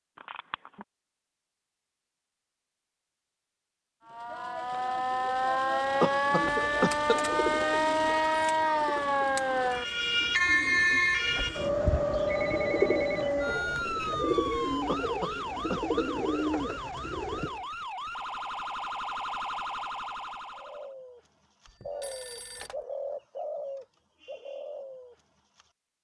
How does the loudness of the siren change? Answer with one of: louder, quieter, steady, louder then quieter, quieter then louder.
quieter.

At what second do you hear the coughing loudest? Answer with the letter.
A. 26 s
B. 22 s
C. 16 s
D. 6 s
D.